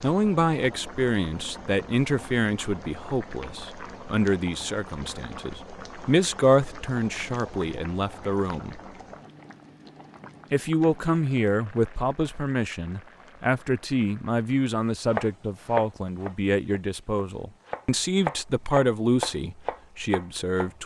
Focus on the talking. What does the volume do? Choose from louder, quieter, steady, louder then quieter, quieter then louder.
steady.